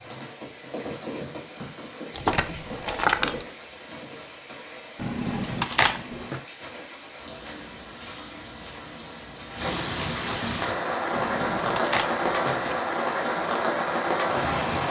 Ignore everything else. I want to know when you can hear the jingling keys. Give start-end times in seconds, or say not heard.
2.1-3.5, 5.0-6.4, 11.1-12.8.